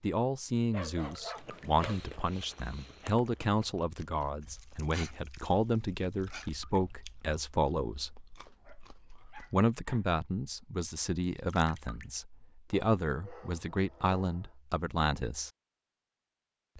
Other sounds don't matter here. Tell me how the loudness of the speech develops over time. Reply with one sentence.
The loudness of the speech stays about the same.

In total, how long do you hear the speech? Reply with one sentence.
You can hear the speech for 14 seconds altogether.